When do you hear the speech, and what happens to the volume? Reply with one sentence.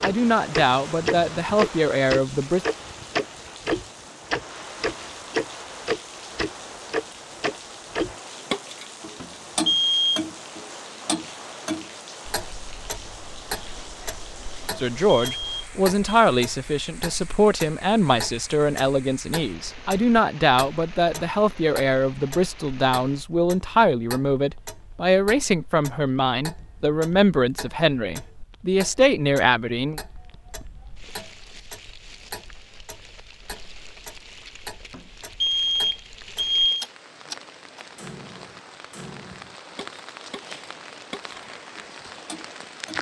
You can hear the speech briefly from 0.0 to 2.6 s; and from 14.8 to 30.0 s, at a steady volume.